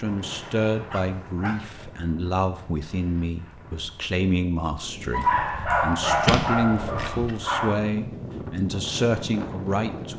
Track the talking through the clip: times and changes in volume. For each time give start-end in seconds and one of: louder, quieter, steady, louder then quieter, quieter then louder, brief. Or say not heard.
0.0-10.1 steady.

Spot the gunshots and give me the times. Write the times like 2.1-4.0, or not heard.
5.5-7.3.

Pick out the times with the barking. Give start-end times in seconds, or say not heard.
0.1-1.9, 5.1-7.8.